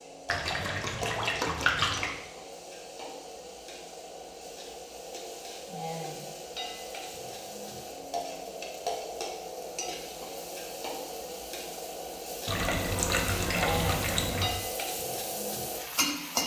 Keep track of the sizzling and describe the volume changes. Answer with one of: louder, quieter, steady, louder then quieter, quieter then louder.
louder.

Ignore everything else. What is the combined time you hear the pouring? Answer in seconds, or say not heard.
4 s.